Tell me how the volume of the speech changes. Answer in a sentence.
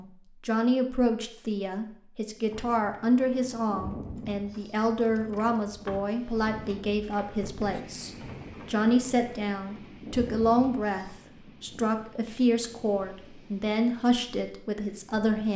The loudness of the speech stays about the same.